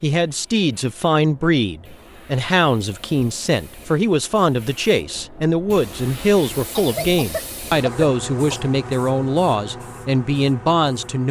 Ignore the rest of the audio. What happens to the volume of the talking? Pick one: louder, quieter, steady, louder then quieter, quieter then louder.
steady.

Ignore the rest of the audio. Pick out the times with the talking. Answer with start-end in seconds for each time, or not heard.
0.0-11.2.